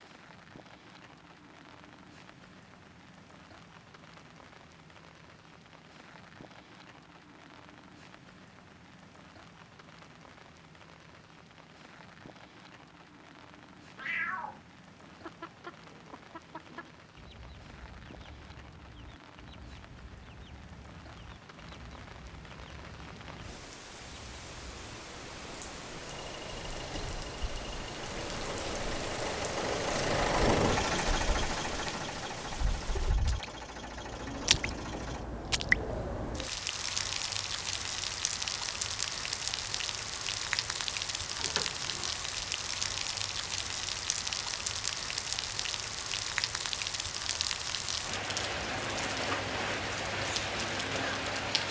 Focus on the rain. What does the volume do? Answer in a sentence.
The volume of the rain goes up.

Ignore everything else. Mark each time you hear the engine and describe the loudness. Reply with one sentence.
The engine can be heard from 26.0 to 35.2 s, getting louder then quieter.